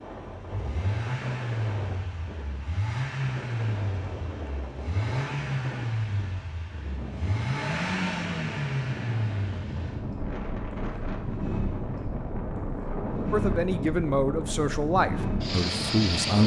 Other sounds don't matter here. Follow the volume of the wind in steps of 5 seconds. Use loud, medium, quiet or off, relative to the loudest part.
medium, medium, loud, loud.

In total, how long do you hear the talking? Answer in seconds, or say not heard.
3 s.